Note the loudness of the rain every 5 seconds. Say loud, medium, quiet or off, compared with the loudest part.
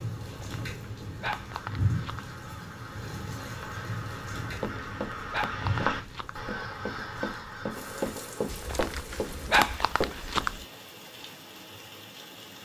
loud, medium, medium.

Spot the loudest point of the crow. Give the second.
6 s.